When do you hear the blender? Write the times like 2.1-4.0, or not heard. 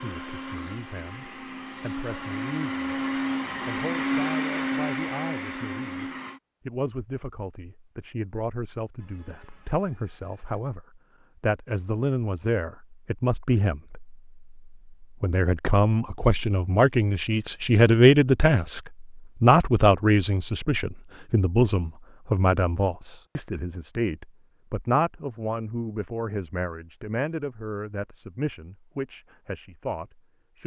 0.0-6.4.